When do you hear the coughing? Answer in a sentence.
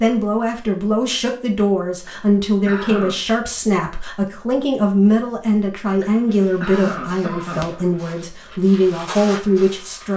You can hear the coughing from 2.0 to 3.2 s and from 6.0 to 7.8 s.